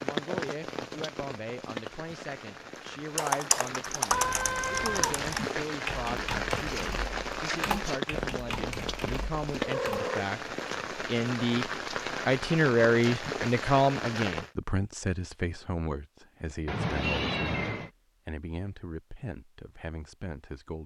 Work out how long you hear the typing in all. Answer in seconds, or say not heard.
7 s.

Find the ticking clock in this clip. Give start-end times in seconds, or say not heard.
not heard.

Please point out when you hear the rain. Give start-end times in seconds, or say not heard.
0.0-14.5.